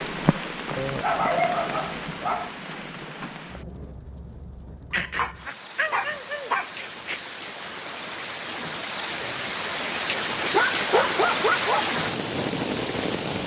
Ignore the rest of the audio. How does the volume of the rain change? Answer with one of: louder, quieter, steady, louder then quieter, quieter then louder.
quieter then louder.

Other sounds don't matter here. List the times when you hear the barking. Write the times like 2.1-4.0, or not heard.
0.8-2.5, 4.9-7.2, 9.9-11.9.